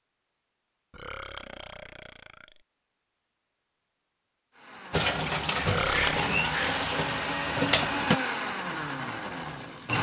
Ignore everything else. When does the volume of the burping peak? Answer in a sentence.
The loudest moment of the burping is at 6 seconds.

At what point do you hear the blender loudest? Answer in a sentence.
The volume of the blender peaks at 8 seconds.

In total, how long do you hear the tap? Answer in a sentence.
You can hear the tap for 3 seconds altogether.